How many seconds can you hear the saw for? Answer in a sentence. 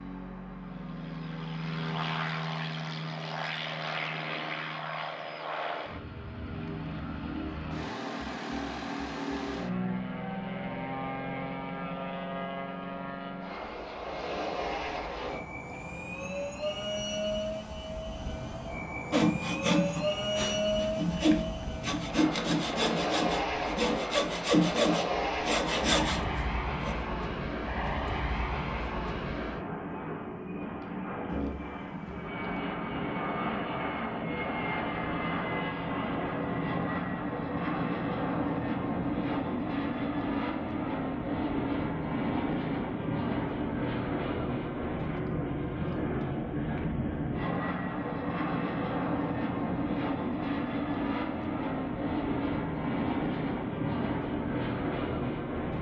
You can hear the saw for 8 seconds altogether.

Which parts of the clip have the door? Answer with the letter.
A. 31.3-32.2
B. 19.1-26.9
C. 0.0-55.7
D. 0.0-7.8
A.